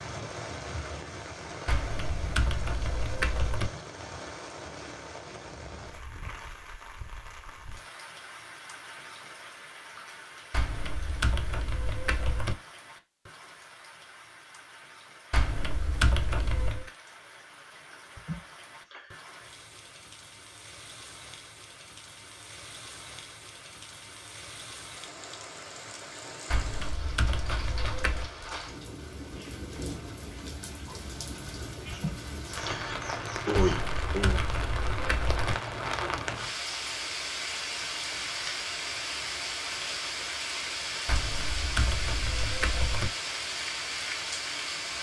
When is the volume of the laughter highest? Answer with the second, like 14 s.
34 s.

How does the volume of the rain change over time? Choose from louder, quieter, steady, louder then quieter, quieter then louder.
quieter then louder.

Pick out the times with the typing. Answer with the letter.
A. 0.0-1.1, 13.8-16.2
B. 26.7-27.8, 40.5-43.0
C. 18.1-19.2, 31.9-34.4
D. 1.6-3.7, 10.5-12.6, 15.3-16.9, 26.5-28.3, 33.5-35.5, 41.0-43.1
D.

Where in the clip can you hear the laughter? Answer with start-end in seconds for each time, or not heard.
18.1-19.2, 31.9-34.4.